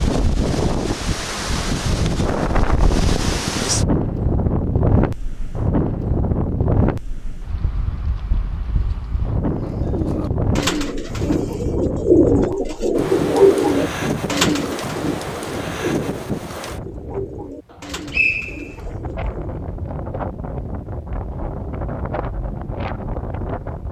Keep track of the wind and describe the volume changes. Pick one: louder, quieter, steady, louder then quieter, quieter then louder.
quieter.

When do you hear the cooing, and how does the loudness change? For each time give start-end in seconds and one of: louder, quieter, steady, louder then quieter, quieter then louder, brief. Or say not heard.
9.5-19.6 louder then quieter.